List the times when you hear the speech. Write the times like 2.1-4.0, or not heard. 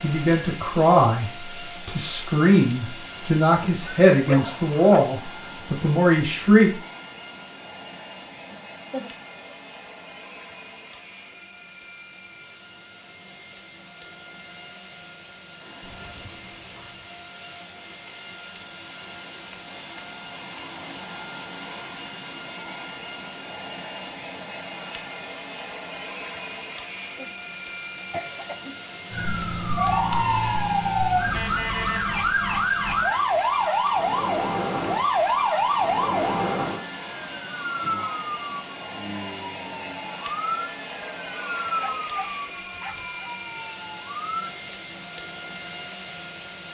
0.0-6.7.